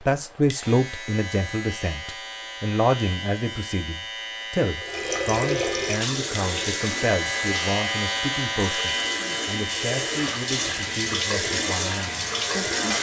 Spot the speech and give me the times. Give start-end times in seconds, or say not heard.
0.0-12.9.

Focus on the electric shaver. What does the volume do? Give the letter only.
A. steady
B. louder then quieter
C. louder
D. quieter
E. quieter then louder
B.